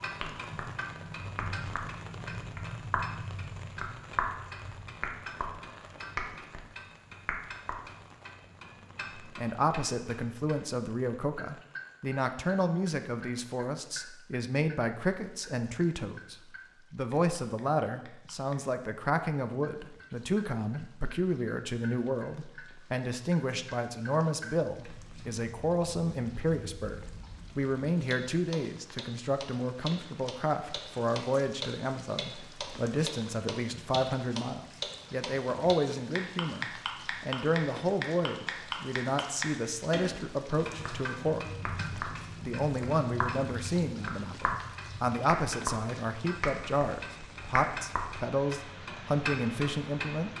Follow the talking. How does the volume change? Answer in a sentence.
The loudness of the talking stays about the same.